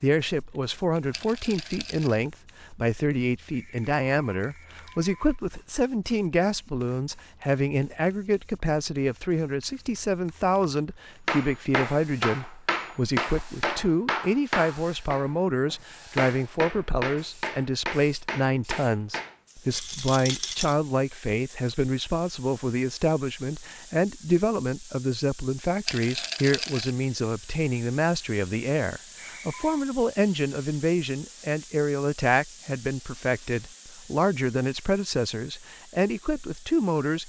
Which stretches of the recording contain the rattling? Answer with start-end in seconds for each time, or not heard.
1.1-2.2, 19.7-20.8, 25.9-26.9.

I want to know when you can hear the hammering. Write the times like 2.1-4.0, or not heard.
11.2-19.4.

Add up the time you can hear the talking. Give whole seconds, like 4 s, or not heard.
37 s.